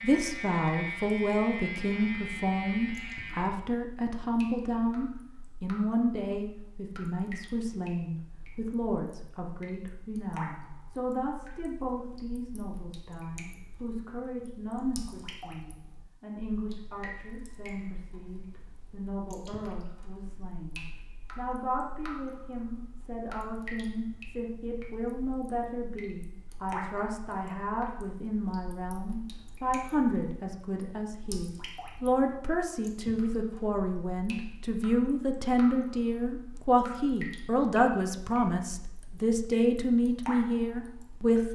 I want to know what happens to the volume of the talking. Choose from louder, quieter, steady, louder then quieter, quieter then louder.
quieter then louder.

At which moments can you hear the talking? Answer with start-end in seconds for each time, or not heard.
0.0-41.5.